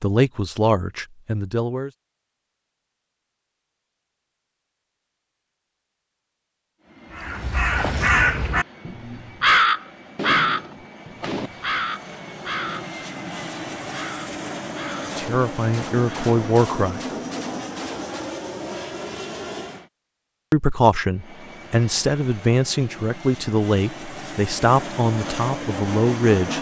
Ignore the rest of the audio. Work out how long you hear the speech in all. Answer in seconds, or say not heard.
10 s.